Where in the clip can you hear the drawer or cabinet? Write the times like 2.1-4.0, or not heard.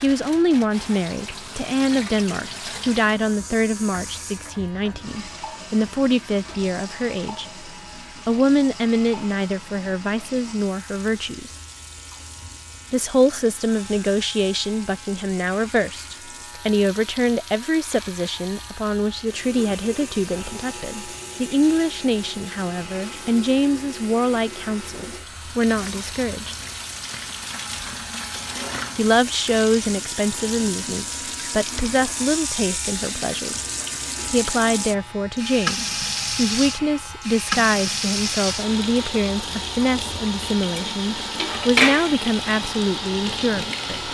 not heard.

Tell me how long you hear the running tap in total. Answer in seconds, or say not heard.
44 s.